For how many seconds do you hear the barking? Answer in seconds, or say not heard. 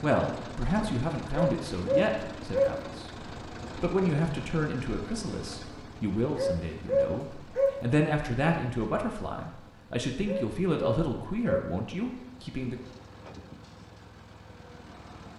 4 s.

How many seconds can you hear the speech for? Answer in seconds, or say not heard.
12 s.